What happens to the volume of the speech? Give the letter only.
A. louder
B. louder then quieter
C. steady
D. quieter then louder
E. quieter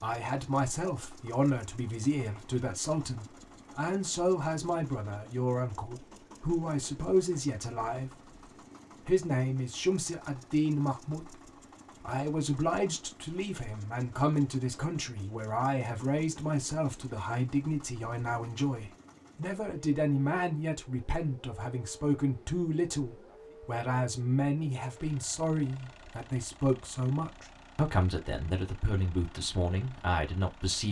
C.